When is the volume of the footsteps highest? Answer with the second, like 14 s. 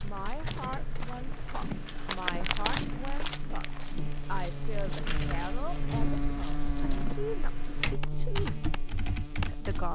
3 s.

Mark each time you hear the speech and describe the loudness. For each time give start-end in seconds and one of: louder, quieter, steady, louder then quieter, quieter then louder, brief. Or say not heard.
0.0-9.9 steady.